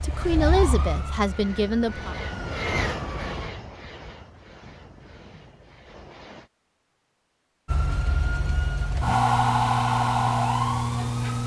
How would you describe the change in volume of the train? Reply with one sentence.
The volume of the train goes up, then down.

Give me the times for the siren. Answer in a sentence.
You can hear the siren from 0.0 to 3.5 s and from 7.7 to 11.4 s.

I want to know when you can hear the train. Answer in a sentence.
You can hear the train from 0.0 to 6.5 s.